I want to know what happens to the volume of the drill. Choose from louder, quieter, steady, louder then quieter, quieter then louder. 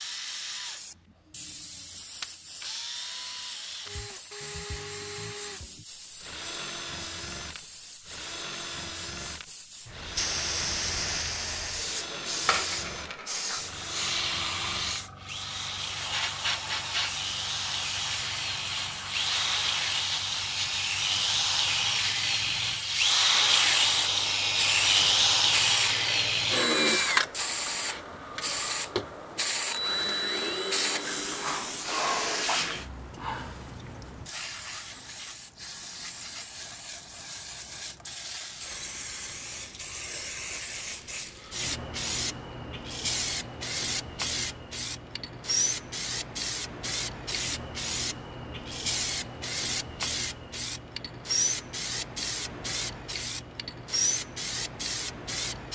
louder.